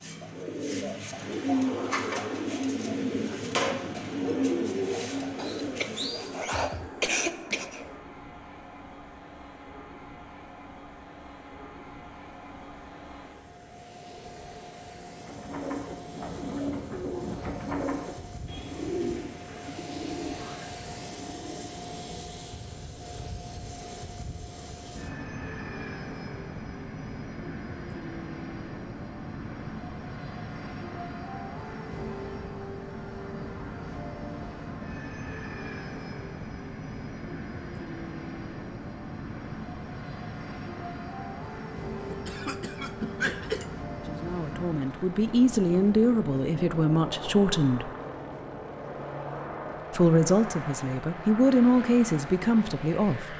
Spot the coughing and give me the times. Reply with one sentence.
The coughing can be heard from 5.3 to 7.9 s and from 42.0 to 43.6 s.